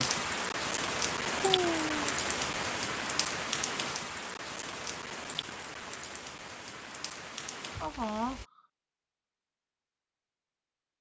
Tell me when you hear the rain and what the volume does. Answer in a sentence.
The rain can be heard from 0.0 to 8.4 s, getting quieter.